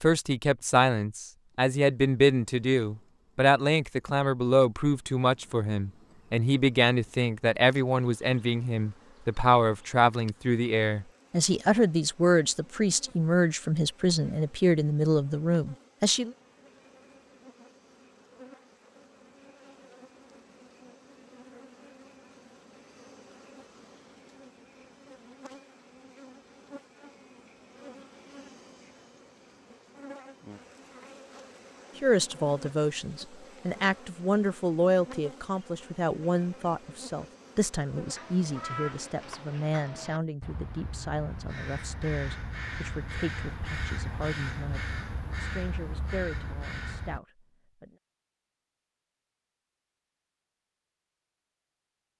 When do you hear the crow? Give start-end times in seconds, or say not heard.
38.0-47.2.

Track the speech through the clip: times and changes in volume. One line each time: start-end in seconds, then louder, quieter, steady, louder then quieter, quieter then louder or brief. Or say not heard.
0.0-16.4 steady
32.0-48.0 quieter.